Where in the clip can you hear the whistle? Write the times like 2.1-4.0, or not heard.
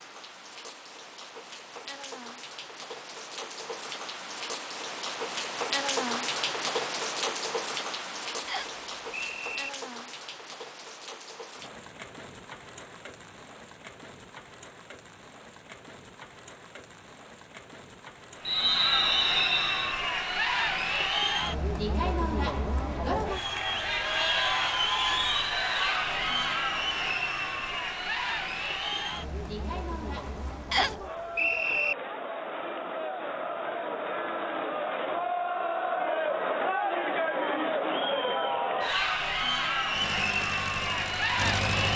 8.4-9.7, 18.4-19.9, 30.7-31.9.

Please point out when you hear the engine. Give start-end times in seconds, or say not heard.
39.9-41.9.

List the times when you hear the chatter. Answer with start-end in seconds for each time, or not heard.
18.4-41.9.